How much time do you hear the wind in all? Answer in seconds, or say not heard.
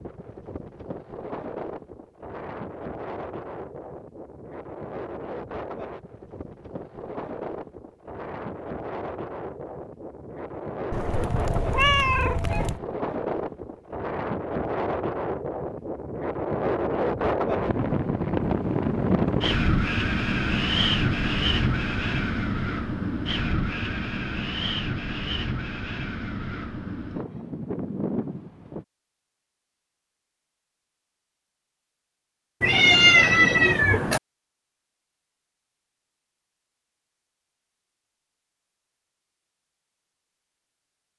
29 s.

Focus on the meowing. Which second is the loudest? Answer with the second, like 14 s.
33 s.